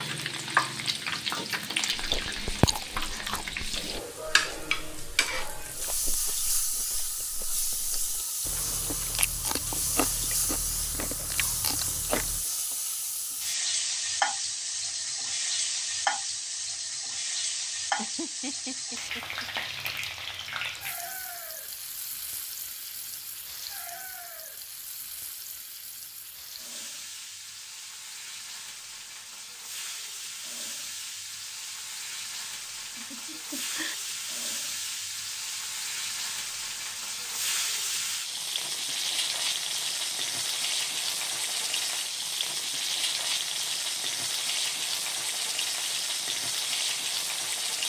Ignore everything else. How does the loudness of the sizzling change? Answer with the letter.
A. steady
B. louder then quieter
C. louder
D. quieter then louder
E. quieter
D.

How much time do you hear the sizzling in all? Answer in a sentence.
You can hear the sizzling for 48 seconds altogether.